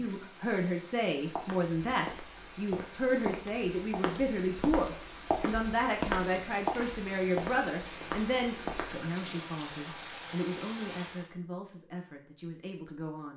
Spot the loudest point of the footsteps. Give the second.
6 s.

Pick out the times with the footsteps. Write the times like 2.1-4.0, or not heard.
1.4-8.9.